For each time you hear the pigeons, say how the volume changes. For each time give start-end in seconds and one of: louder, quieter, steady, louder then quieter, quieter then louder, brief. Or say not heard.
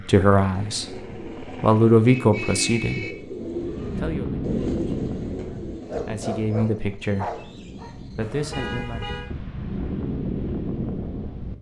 0.5-6.0 louder.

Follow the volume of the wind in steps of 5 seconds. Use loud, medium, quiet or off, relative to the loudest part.
loud, medium, loud.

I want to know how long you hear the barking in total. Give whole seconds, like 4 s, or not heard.
2 s.